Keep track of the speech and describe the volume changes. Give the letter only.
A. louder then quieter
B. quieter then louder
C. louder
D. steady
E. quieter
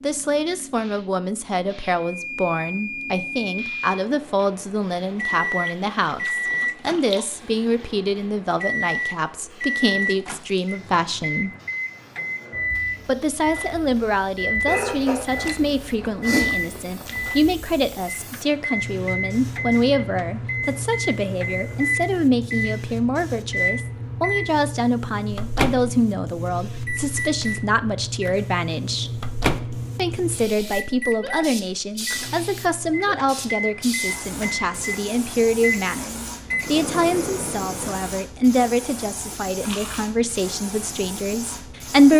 D.